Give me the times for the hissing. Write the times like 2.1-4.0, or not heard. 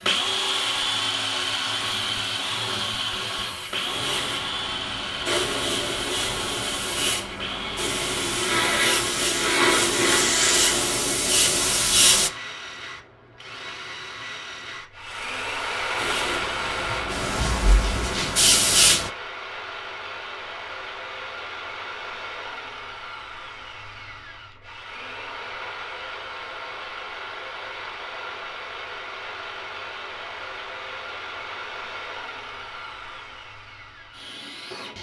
0.0-12.3, 15.9-19.1.